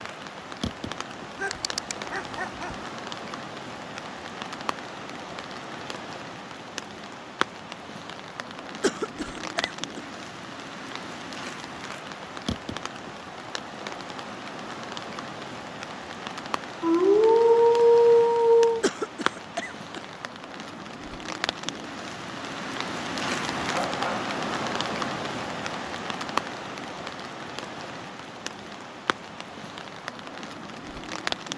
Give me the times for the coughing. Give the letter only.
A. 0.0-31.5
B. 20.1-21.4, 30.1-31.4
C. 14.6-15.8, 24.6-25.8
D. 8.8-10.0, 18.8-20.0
D.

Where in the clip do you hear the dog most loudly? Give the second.
18 s.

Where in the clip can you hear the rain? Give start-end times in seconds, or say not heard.
0.0-31.5.